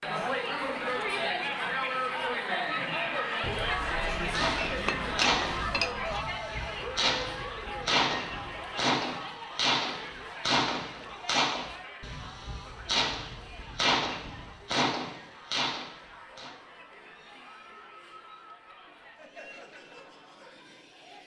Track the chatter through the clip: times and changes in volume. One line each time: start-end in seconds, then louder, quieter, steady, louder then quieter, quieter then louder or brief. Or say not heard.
0.0-21.2 quieter.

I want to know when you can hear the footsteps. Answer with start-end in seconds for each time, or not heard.
not heard.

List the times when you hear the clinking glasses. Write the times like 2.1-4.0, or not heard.
3.4-6.2.